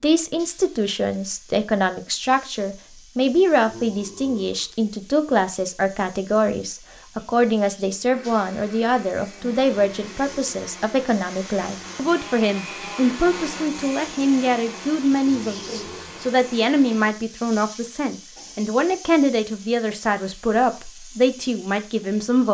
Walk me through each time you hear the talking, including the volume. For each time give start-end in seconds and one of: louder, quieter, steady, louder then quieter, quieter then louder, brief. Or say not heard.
0.0-22.4 steady.